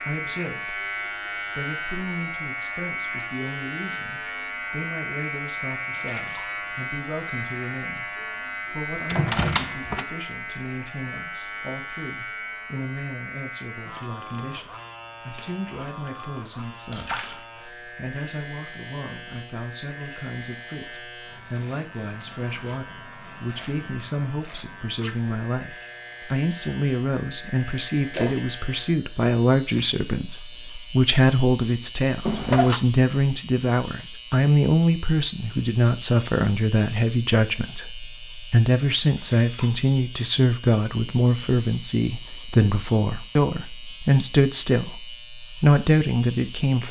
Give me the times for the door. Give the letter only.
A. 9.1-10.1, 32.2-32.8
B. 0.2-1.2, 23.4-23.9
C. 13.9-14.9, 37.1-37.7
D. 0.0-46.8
A.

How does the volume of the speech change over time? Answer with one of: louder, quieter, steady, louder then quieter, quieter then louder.
louder.